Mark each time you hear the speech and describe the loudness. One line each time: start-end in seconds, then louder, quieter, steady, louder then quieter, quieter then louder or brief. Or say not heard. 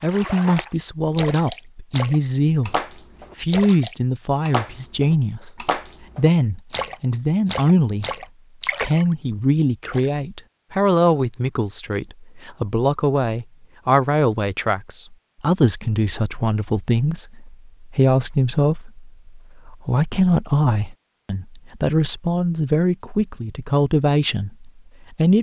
0.0-8.1 steady
8.8-25.3 steady.